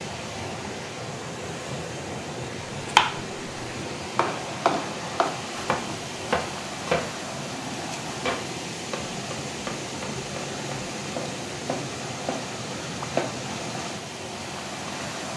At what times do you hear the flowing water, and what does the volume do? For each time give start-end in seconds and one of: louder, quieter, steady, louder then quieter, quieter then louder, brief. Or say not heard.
0.0-15.3 steady.